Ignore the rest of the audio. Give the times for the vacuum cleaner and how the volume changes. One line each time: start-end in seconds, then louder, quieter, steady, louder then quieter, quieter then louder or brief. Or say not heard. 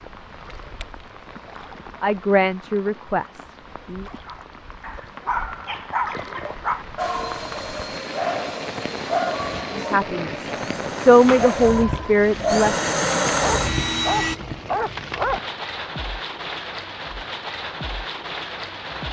7.0-14.3 louder.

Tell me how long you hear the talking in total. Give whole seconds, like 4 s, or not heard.
5 s.